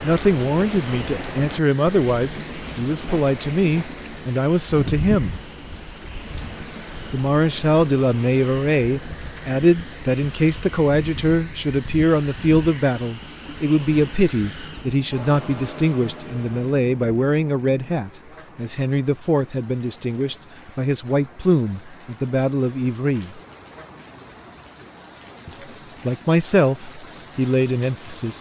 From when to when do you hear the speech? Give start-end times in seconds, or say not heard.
0.0-5.4, 7.1-23.4, 25.4-28.3.